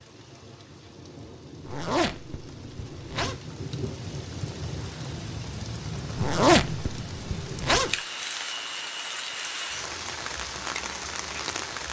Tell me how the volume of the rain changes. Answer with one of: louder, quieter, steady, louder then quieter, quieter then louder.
louder.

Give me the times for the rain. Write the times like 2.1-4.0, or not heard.
0.0-11.8.